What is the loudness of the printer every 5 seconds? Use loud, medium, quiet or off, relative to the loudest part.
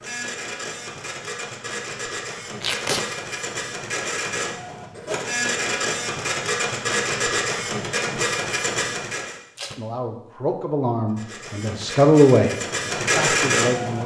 medium, loud, loud.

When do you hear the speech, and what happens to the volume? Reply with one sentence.
You can hear the speech from 9.8 to 14.0 s, getting louder then quieter.